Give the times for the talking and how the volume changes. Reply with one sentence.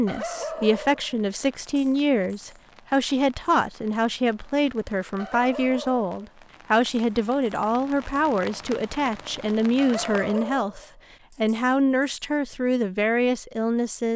The talking can be heard from 0.0 to 14.1 s, at a steady volume.